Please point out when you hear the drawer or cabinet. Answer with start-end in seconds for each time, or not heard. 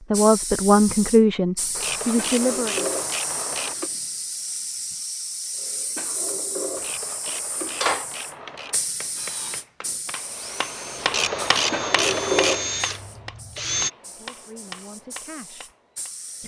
2.1-3.9, 6.0-8.1, 11.7-12.7.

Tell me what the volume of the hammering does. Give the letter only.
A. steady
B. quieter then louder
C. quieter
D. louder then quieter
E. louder
D.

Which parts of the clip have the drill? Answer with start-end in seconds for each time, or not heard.
9.2-13.9.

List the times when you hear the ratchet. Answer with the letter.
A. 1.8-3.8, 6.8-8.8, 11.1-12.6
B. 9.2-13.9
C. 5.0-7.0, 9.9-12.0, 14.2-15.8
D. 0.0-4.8
A.